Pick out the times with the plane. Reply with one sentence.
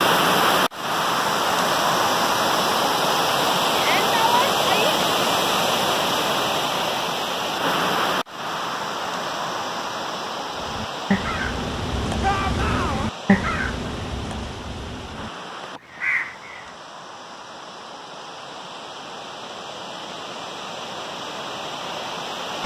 The plane can't be heard in this clip.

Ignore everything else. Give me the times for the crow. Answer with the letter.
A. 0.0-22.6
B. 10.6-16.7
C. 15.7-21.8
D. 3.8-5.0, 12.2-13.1
B.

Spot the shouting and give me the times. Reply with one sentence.
You can hear the shouting from 3.8 to 5.0 s and from 12.2 to 13.1 s.